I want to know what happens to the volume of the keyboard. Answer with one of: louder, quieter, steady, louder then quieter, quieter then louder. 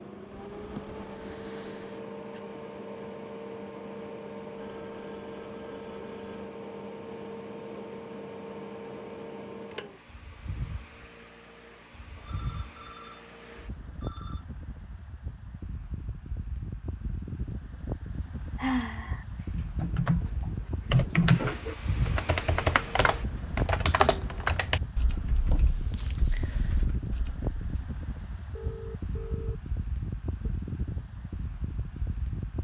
quieter.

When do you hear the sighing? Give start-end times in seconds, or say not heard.
0.7-2.4, 18.6-19.2, 25.5-26.9.